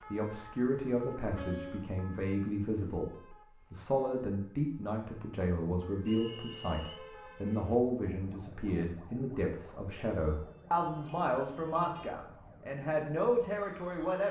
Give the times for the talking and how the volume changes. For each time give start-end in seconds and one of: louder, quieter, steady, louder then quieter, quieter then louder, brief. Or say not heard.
0.1-14.2 steady.